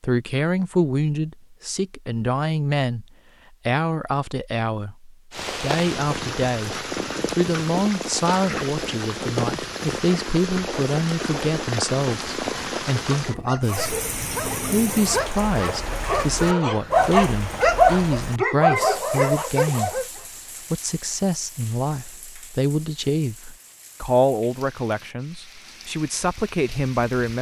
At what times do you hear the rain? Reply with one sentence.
You can hear the rain from 5.3 to 27.3 s.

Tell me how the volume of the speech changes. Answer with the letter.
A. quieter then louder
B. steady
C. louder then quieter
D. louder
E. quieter
B.